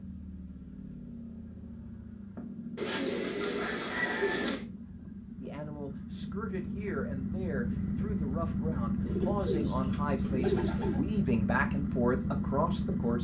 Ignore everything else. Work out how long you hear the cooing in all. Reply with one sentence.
The cooing can be heard for 4 seconds in total.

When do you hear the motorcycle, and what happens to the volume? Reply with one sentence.
You can hear the motorcycle from 0.0 to 13.1 s, getting louder.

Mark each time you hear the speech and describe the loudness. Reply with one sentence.
You can hear the speech from 5.4 to 13.1 s, getting louder.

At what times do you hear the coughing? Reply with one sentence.
You can't hear the coughing here.